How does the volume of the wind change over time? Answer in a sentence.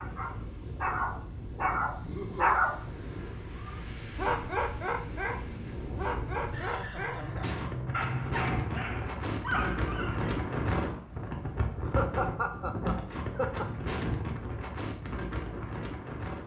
The volume of the wind goes up.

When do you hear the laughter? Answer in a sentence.
You can hear the laughter from 2.0 to 2.5 s, from 6.5 to 8.6 s and from 11.8 to 13.7 s.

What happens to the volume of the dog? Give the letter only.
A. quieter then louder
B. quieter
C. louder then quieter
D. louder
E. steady
B.